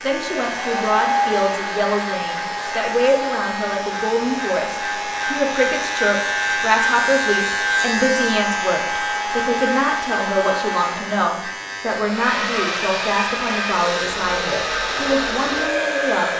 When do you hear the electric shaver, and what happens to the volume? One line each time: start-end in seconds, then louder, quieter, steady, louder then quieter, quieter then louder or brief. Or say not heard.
0.0-16.3 louder then quieter.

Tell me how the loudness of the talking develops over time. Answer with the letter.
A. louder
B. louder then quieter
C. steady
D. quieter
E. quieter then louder
C.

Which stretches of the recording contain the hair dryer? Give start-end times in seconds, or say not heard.
0.0-16.3.